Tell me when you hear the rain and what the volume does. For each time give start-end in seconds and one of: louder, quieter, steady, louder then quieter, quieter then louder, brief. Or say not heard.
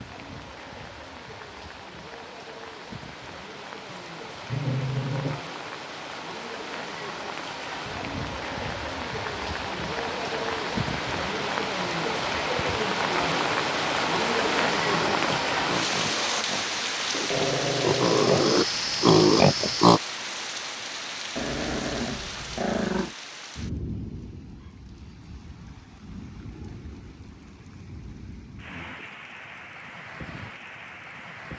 0.0-31.5 louder then quieter.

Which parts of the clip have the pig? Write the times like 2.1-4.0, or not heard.
14.8-20.0.